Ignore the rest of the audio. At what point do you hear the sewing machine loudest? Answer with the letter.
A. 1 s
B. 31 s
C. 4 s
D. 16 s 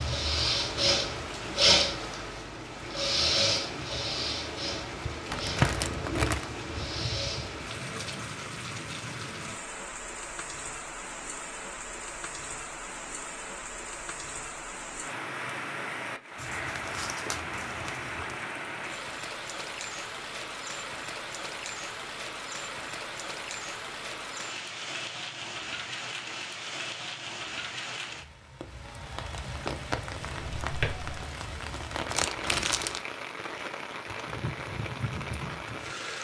A.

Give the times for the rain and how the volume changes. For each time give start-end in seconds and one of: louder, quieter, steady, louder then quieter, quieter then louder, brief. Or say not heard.
0.0-36.1 steady.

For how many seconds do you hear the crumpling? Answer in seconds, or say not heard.
4 s.